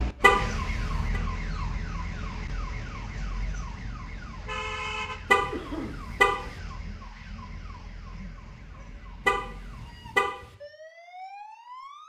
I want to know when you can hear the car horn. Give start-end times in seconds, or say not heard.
0.2-1.2, 5.3-6.5, 9.2-10.4.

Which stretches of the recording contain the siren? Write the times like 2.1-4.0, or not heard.
0.0-12.0.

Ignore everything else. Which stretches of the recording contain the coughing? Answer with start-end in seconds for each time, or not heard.
5.5-6.0.